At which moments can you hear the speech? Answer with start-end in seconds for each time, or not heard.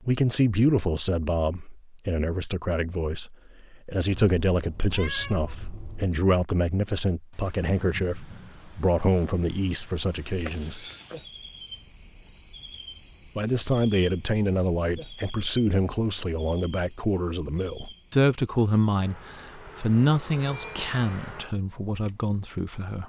0.1-10.8, 13.3-23.0.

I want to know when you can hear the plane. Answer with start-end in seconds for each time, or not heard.
not heard.